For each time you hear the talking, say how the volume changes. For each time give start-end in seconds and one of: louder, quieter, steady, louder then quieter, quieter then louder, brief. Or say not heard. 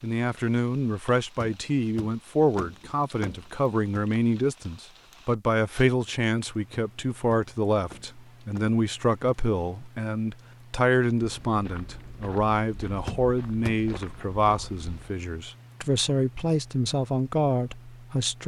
0.0-18.4 steady.